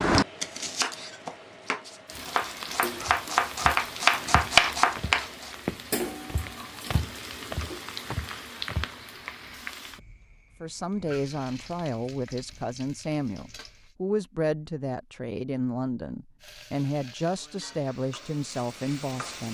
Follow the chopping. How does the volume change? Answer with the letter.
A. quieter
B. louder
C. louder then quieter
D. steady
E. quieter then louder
E.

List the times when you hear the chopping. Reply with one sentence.
The chopping can be heard from 0.0 to 5.5 s.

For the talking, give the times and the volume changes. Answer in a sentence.
You can hear the talking from 10.6 to 19.4 s, at a steady volume.